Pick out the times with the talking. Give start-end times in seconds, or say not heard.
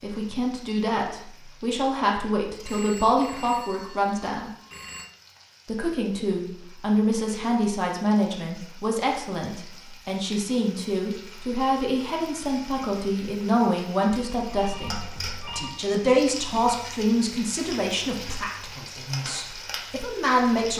0.0-4.5, 5.7-20.7.